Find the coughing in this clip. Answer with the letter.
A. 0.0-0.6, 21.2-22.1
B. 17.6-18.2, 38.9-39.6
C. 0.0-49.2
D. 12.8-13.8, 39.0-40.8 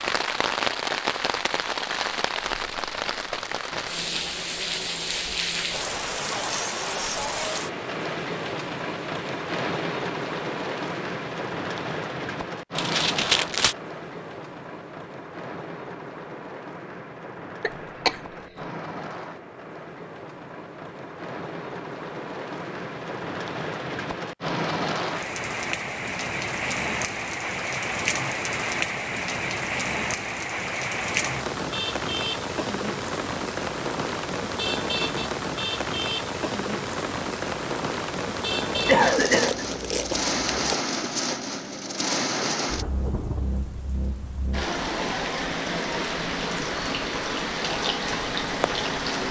B.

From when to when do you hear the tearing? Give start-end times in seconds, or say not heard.
12.8-13.8, 39.0-40.8.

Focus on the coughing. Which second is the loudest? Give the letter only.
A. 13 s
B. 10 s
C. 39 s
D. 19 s
C.